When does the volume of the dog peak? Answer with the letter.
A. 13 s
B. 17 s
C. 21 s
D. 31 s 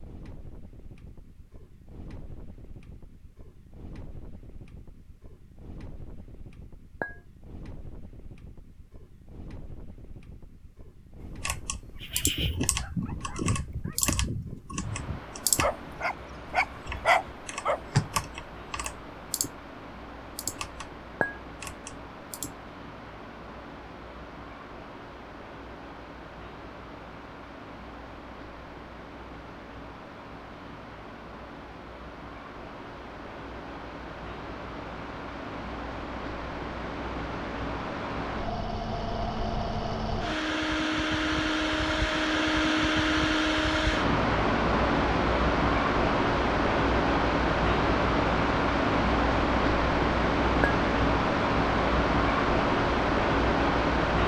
B.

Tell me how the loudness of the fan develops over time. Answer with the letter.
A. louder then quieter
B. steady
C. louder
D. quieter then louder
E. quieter
C.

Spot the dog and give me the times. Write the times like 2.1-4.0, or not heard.
12.0-17.8.